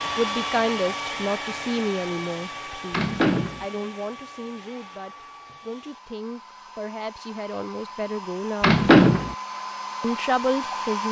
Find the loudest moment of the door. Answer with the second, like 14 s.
9 s.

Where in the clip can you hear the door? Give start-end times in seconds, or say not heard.
2.9-3.6, 8.6-9.3.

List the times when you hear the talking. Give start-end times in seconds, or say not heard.
0.1-8.8, 10.0-11.0.